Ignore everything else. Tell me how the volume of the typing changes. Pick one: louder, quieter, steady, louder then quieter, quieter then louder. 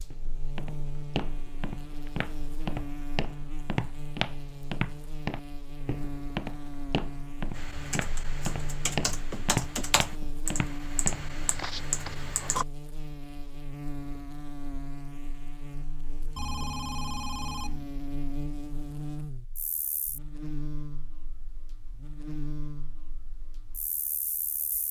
louder.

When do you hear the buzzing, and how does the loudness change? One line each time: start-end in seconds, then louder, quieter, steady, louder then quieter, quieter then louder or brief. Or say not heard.
0.0-24.8 steady.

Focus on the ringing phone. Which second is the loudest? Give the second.
17 s.